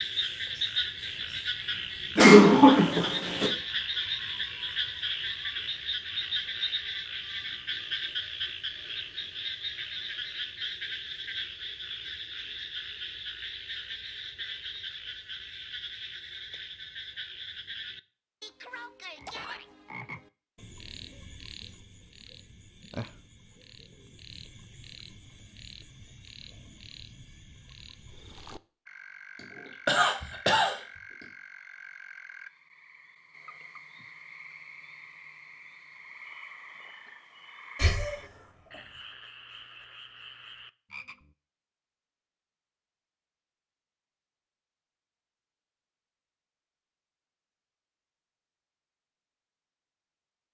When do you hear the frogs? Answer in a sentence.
The frogs can be heard from 0.0 to 41.4 s.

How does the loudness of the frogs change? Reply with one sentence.
The volume of the frogs goes down.